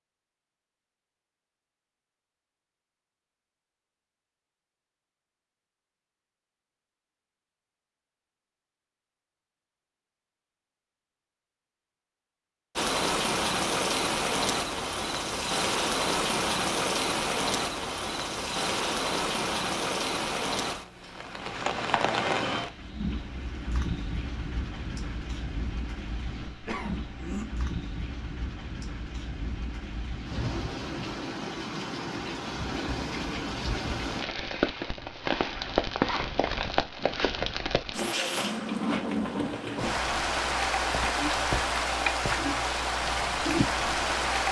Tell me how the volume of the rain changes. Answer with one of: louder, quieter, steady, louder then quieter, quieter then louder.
quieter then louder.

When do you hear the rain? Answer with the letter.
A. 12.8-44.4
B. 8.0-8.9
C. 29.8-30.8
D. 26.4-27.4
A.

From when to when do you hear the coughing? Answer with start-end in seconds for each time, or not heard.
26.4-27.4.